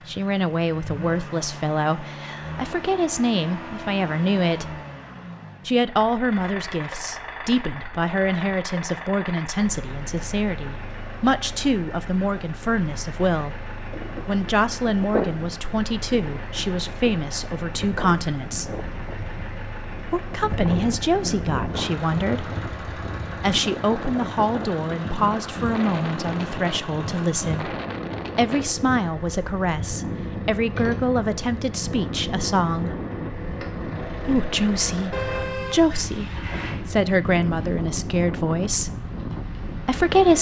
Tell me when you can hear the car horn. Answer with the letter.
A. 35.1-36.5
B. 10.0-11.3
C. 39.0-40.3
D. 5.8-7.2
A.